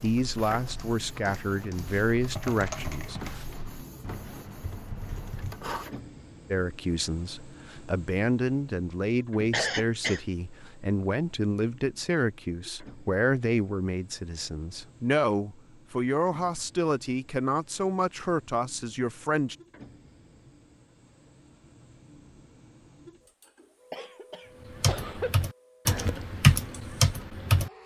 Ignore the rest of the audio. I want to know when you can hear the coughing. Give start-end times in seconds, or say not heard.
9.5-10.2, 23.9-25.4.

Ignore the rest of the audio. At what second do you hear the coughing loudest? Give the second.
10 s.